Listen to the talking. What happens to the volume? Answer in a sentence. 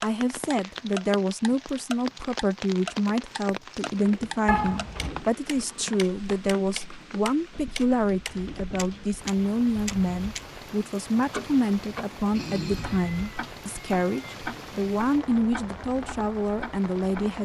The loudness of the talking stays about the same.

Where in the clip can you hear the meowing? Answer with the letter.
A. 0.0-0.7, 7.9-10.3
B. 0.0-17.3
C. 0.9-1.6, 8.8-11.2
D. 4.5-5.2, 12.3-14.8
D.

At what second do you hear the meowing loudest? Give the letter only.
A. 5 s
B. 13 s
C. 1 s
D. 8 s
A.